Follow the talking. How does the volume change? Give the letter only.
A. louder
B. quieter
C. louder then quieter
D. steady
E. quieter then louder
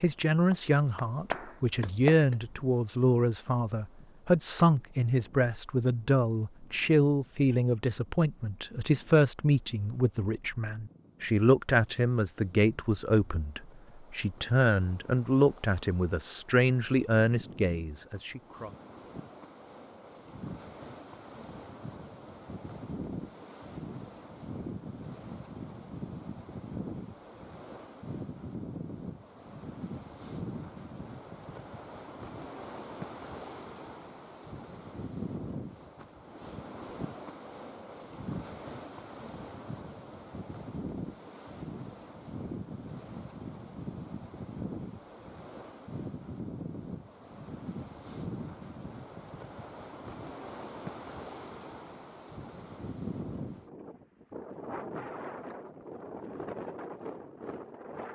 D.